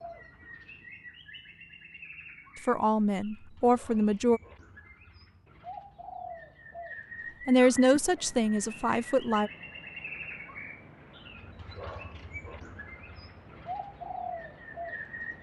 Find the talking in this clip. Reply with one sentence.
You can hear the talking from 2.6 to 4.4 s and from 7.5 to 9.5 s.